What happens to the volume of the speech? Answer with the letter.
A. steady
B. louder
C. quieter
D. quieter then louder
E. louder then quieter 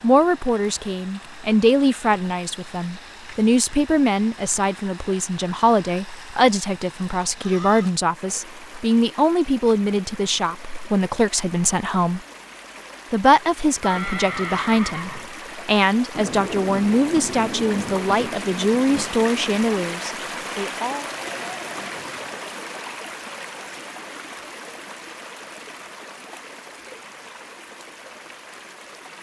A.